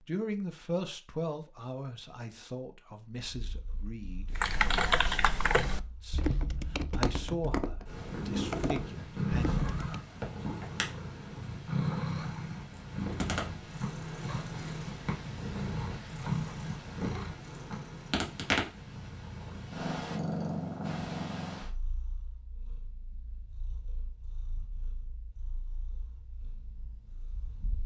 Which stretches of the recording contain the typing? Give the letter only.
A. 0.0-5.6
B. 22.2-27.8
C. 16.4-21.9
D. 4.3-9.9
D.